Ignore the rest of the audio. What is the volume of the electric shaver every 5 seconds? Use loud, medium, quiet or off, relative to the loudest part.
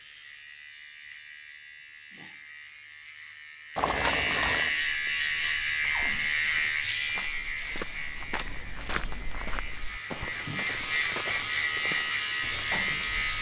medium, loud, loud.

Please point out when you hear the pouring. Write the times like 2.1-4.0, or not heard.
3.8-4.8.